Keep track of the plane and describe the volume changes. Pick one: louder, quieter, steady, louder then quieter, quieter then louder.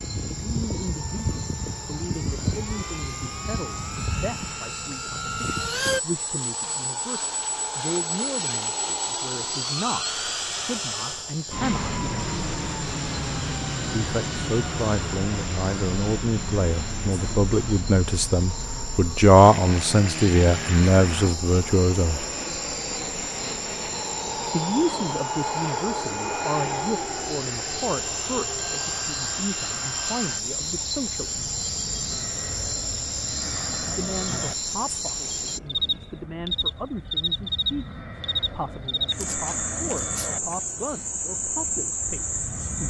quieter.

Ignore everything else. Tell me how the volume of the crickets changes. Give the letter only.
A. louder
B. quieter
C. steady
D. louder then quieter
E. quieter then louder
A.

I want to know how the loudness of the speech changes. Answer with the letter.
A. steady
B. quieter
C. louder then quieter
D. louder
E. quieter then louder
C.